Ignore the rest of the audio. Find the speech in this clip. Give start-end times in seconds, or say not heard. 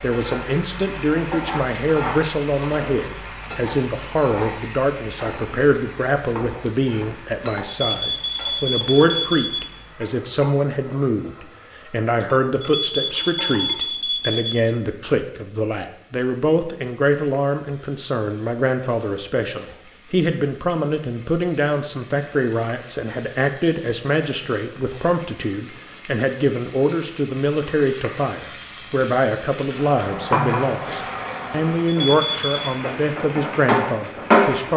0.0-34.7.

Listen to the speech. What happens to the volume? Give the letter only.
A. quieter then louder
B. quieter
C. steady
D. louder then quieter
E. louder
C.